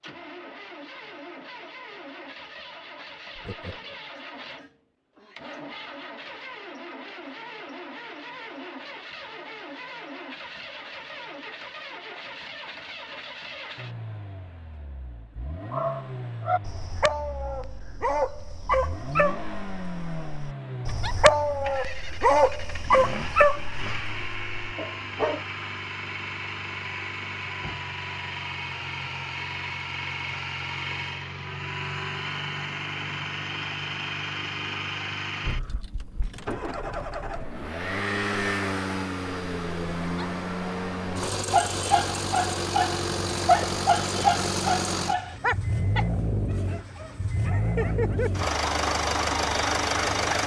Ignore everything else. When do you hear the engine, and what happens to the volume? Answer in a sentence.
You can hear the engine from 0.0 to 50.4 s, getting louder.